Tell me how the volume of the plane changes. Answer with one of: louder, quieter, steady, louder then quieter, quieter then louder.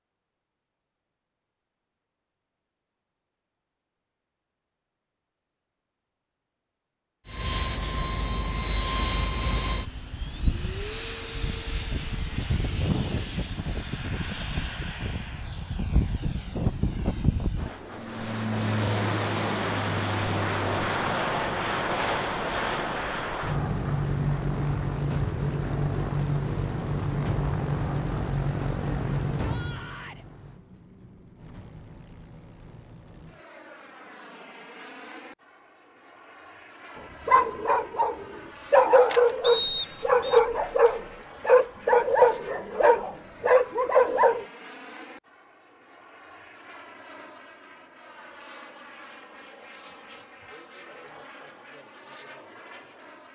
quieter.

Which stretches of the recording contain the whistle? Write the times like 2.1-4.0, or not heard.
39.4-40.4.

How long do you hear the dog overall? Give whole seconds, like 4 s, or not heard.
7 s.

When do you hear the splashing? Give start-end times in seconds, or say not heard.
not heard.